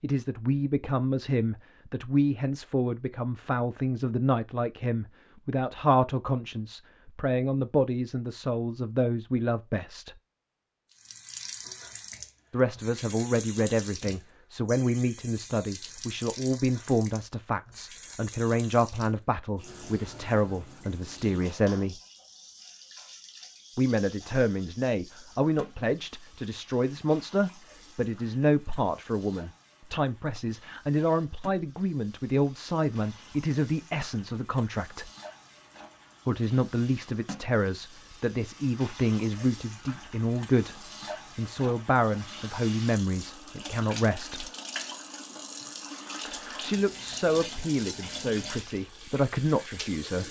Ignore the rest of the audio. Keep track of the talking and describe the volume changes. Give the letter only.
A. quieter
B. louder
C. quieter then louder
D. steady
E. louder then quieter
D.